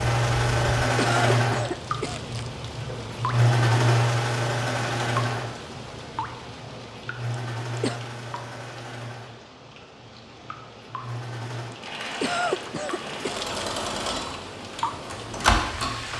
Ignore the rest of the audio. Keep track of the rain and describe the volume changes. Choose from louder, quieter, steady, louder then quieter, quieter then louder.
quieter then louder.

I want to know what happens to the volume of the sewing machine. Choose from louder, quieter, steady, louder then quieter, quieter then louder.
quieter then louder.